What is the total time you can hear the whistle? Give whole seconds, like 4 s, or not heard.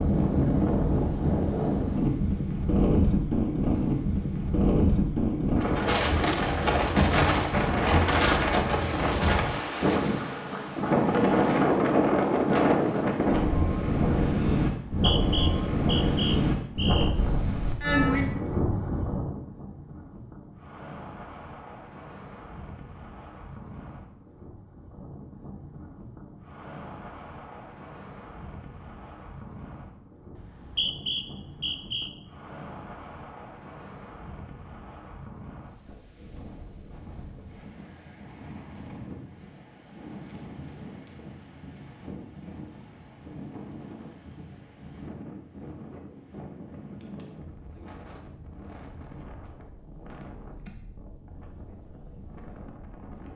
4 s.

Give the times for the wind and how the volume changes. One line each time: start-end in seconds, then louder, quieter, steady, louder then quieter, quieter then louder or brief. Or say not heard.
0.0-53.3 quieter.